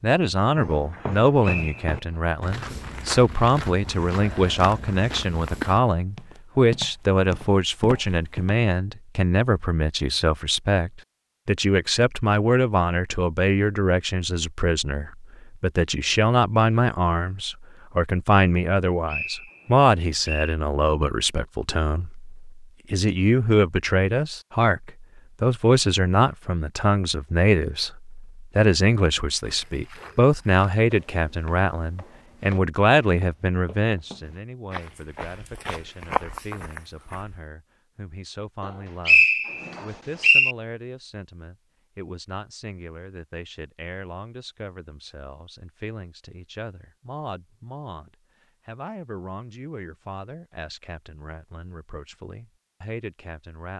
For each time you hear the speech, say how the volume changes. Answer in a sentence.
You can hear the speech from 0.0 to 53.7 s, getting quieter.